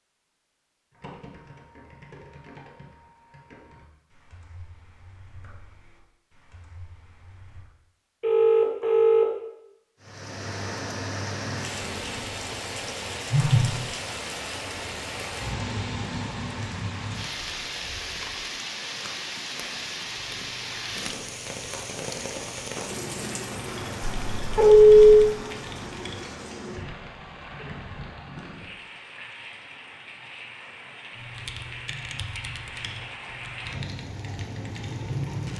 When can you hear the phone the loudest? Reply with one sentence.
The volume of the phone peaks at 25 seconds.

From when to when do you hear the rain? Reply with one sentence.
You can hear the rain from 10.0 to 35.5 s.